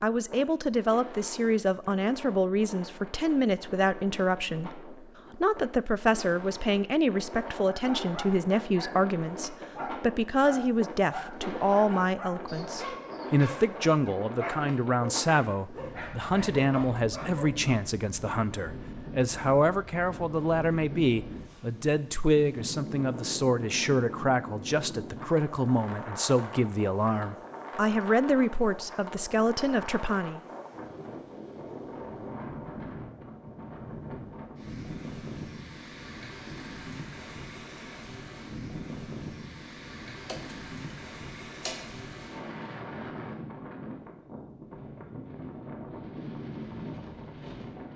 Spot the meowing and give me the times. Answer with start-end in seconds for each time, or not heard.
40.2-41.9.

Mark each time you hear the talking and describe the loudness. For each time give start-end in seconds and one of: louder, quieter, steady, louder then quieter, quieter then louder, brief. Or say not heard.
0.0-30.4 steady.